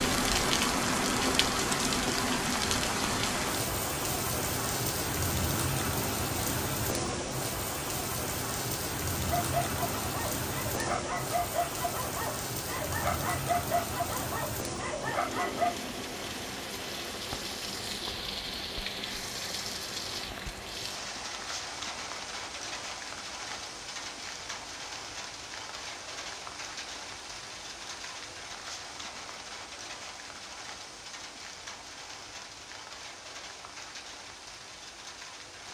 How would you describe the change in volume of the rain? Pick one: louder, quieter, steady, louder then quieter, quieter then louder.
quieter.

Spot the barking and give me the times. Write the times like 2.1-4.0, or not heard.
9.2-15.7.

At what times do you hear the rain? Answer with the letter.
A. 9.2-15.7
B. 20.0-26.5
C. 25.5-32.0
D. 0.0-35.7
D.